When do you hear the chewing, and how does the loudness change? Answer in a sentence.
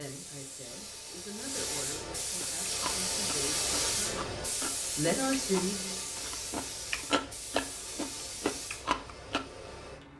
The chewing can be heard from 2.4 to 9.4 s, getting louder.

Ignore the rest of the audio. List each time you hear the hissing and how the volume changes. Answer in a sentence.
The hissing can be heard from 0.0 to 10.1 s, getting louder then quieter.